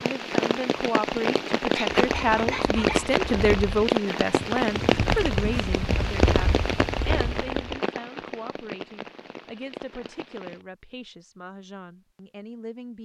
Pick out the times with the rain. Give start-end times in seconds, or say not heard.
0.0-10.7.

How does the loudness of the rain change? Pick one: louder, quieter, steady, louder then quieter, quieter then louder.
quieter.